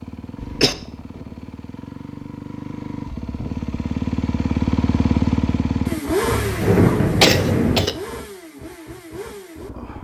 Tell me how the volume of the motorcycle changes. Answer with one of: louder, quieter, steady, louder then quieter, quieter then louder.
louder then quieter.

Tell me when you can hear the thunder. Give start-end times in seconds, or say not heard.
6.3-7.8.